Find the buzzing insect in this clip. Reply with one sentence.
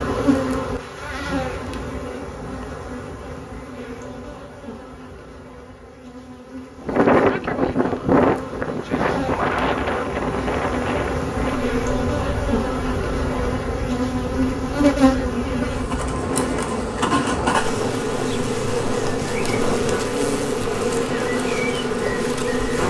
You can hear the buzzing insect from 0.0 to 22.8 s.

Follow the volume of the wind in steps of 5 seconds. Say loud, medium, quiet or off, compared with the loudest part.
off, loud, medium, medium, quiet.